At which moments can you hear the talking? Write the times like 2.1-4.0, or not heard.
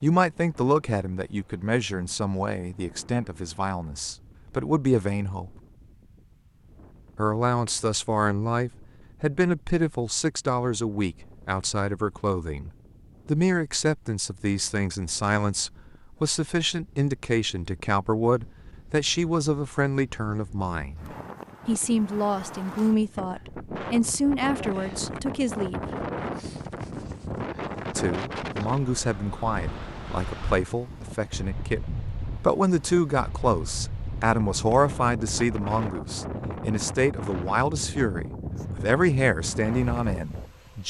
0.0-5.5, 7.2-25.8, 27.9-40.8.